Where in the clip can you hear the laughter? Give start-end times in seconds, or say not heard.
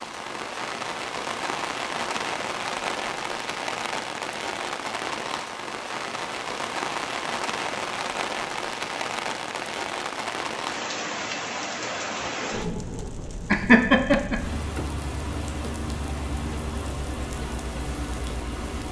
13.5-14.8.